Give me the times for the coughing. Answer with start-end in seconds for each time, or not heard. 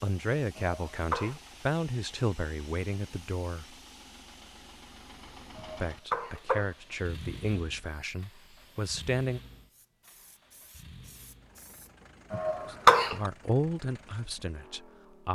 0.6-1.4, 5.5-6.8, 12.3-13.3.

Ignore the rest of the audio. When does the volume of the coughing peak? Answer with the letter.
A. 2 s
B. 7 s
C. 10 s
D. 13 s
D.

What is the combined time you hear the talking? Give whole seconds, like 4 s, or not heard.
10 s.